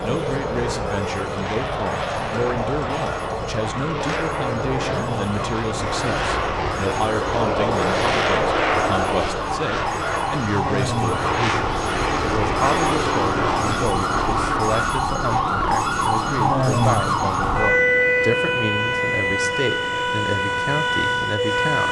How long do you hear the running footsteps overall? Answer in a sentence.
You can't hear the running footsteps here.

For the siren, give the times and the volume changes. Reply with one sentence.
The siren can be heard from 0.0 to 21.8 s, getting louder.